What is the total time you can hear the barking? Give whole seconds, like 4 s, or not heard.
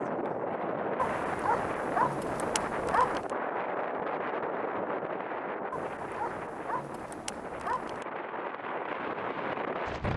5 s.